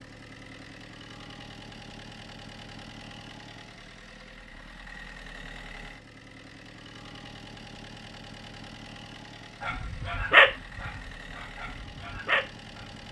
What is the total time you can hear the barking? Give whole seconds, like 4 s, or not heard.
3 s.